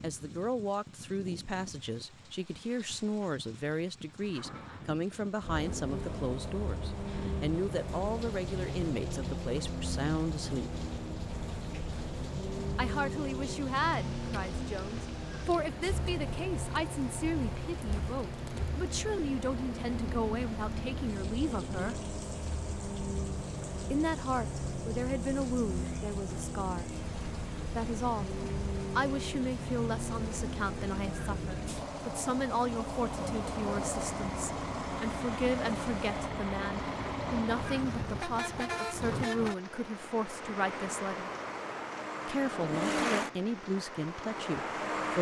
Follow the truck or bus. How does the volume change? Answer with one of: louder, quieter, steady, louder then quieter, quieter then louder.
steady.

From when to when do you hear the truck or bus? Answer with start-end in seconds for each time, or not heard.
5.4-45.1.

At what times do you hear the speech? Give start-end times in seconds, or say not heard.
0.0-10.7, 12.8-22.0, 23.9-28.3, 28.9-41.3, 42.2-45.1.